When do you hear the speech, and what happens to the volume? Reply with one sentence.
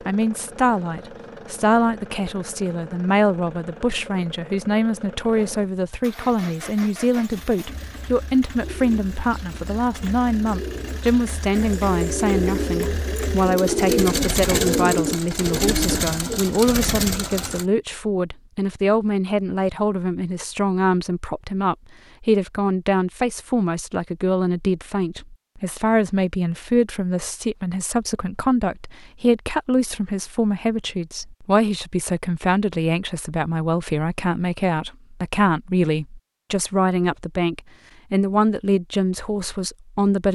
The speech can be heard from 0.1 to 40.3 s, at a steady volume.